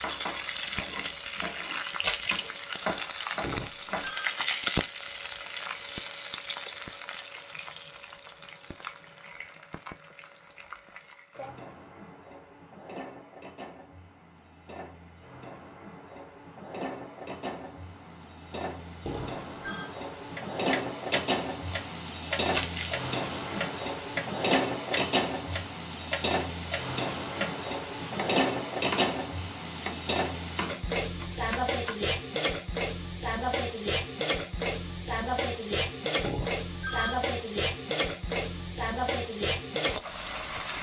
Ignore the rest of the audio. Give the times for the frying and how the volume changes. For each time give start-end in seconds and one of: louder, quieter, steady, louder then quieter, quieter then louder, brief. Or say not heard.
0.0-40.7 quieter then louder.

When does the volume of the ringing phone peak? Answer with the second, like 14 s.
37 s.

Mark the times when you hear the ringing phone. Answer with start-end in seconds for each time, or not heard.
3.4-4.3, 19.1-19.9, 36.2-37.2.